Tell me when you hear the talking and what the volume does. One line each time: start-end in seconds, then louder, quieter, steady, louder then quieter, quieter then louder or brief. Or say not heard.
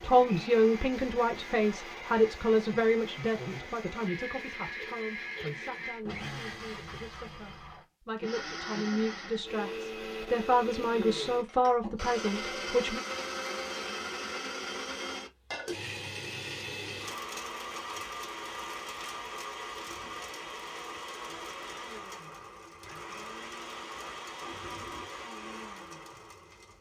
0.0-13.0 quieter then louder.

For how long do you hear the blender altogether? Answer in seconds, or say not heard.
27 s.